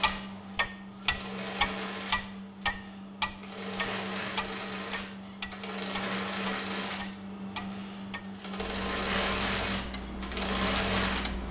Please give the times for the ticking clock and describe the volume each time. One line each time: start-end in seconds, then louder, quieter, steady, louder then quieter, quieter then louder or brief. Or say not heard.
0.0-11.4 quieter.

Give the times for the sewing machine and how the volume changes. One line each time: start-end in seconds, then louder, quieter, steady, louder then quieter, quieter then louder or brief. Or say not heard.
0.0-11.4 louder.